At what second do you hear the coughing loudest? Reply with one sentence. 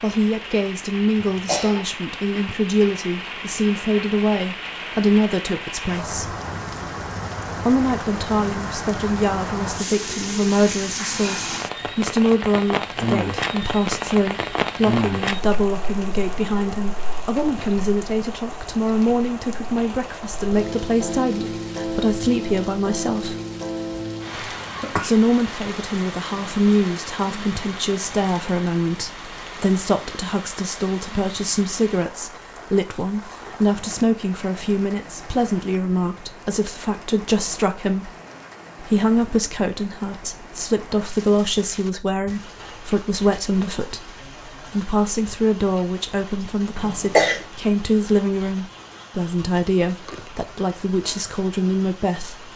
The volume of the coughing peaks at 47 seconds.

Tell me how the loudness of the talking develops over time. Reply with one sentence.
The loudness of the talking stays about the same.